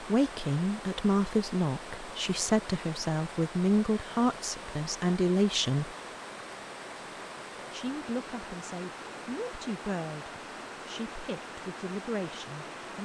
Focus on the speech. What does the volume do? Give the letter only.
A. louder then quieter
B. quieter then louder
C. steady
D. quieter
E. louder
D.